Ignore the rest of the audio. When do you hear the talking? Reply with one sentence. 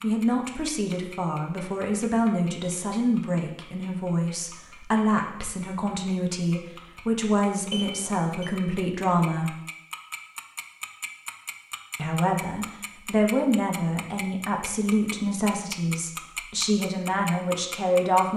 The talking can be heard from 0.0 to 9.6 s and from 11.9 to 18.3 s.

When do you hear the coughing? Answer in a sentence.
You can't hear the coughing here.